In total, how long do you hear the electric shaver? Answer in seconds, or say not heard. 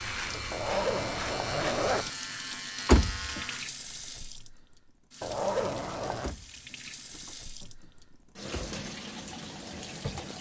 4 s.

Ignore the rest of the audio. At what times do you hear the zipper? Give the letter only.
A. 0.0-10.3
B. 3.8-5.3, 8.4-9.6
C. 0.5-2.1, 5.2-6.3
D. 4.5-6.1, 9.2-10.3
C.